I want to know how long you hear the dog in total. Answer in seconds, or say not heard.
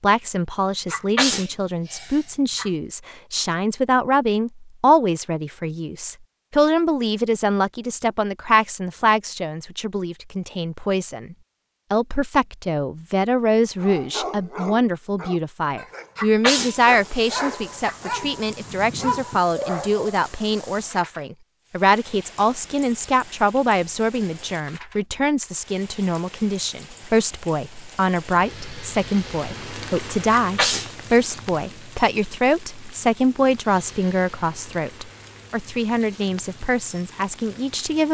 6 s.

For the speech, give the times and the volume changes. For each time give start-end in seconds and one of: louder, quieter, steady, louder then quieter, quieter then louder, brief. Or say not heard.
0.0-38.0 steady.